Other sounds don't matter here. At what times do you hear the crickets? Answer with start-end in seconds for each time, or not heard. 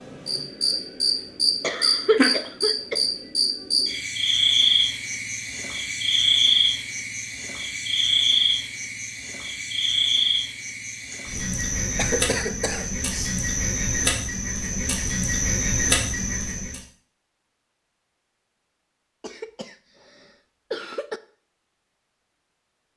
0.0-16.8.